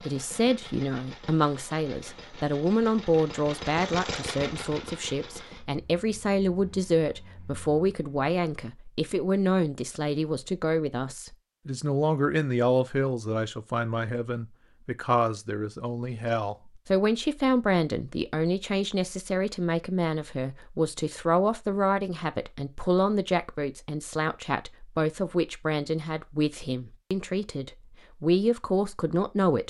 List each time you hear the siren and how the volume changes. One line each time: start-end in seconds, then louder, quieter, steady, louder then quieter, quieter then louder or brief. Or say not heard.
not heard.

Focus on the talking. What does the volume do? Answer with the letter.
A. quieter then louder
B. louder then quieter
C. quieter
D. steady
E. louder
D.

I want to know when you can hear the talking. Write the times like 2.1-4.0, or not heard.
0.1-29.6.